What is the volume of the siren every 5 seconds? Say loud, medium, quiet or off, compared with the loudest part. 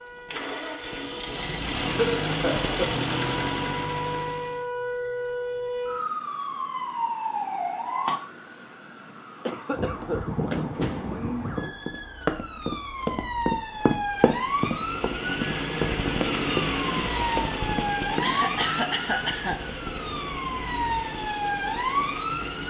medium, loud, loud, loud, loud.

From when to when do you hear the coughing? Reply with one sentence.
The coughing can be heard from 1.9 to 2.9 s, from 9.4 to 10.2 s and from 18.2 to 19.6 s.